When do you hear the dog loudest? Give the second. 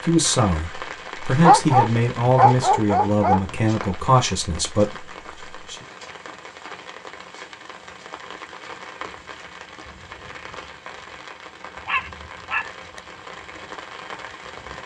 2 s.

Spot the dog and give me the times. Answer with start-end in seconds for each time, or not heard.
1.4-3.5, 11.8-13.0.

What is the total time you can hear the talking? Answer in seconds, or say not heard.
6 s.